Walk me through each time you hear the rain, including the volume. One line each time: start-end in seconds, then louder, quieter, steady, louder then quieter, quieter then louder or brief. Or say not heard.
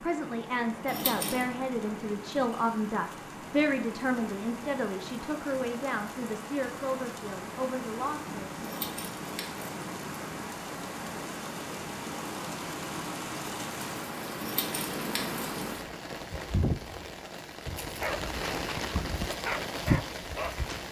0.0-20.8 louder.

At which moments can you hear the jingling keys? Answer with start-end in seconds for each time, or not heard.
0.8-1.5, 8.6-9.9, 14.4-15.8.